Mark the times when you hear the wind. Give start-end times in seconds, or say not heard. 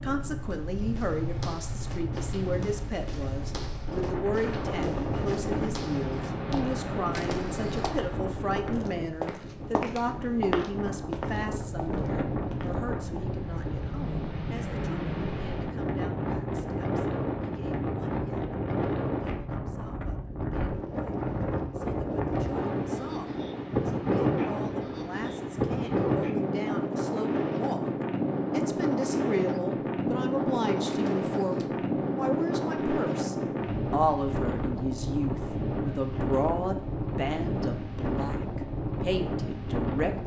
0.0-40.2.